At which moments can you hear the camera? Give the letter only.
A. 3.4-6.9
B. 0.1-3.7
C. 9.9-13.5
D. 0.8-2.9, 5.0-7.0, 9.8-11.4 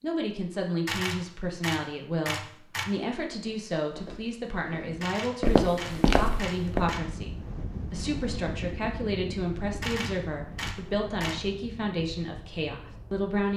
D.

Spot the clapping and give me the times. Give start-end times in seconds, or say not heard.
not heard.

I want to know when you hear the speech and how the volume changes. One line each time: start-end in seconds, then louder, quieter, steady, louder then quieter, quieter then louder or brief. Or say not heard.
0.0-13.5 steady.